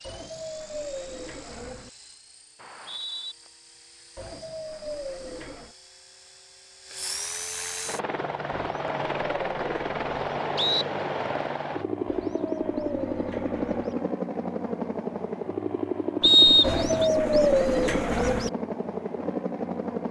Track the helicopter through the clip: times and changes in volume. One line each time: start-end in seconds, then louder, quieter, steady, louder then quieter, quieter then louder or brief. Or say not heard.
0.0-20.0 louder.